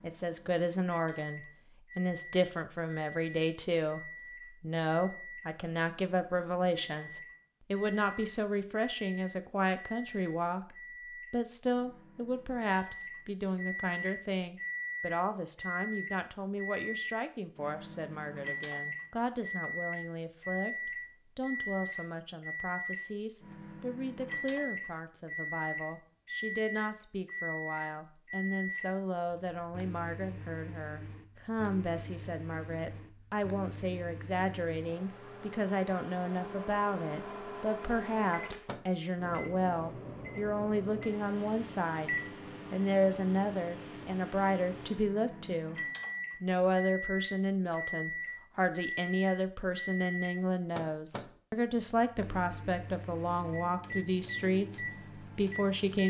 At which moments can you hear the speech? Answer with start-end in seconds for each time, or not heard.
0.0-45.8, 46.4-56.0.